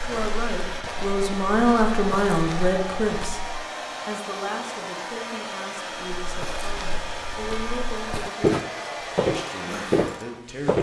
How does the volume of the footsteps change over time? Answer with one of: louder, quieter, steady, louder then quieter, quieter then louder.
louder.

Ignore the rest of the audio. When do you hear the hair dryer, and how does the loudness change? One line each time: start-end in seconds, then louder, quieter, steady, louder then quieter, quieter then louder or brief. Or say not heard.
0.0-10.4 steady.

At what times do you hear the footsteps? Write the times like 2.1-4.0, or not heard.
0.0-3.5, 6.2-10.7.